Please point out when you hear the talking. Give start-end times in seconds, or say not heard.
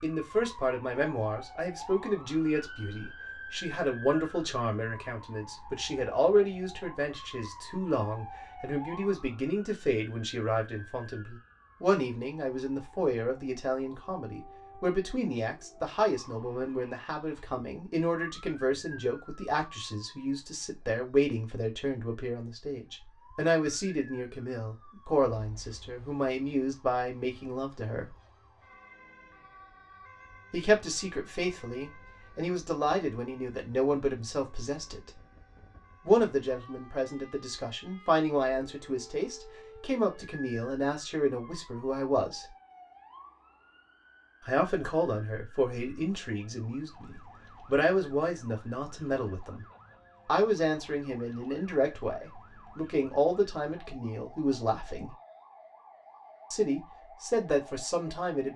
0.0-28.1, 30.5-35.1, 36.0-42.5, 44.5-49.6, 50.2-55.1, 56.5-58.5.